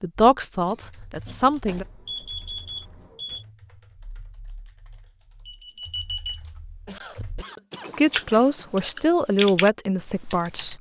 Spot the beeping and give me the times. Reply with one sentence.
The beeping can be heard from 1.6 to 3.5 s and from 5.5 to 6.4 s.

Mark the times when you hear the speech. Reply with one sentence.
You can hear the speech from 0.0 to 1.9 s and from 8.0 to 10.7 s.